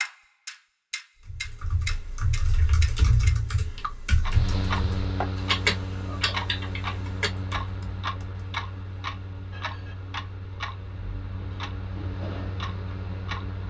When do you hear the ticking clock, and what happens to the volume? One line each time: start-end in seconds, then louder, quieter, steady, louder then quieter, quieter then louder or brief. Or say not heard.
0.0-13.6 quieter.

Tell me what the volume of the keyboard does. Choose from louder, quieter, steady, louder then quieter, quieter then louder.
louder then quieter.